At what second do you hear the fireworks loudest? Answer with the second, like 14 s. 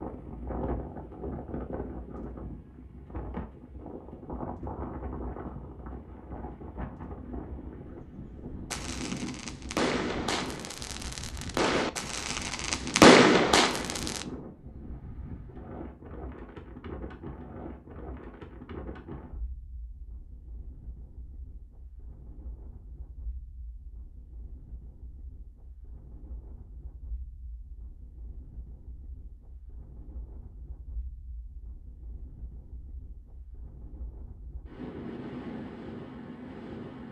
13 s.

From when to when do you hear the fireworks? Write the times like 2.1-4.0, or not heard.
8.7-14.2.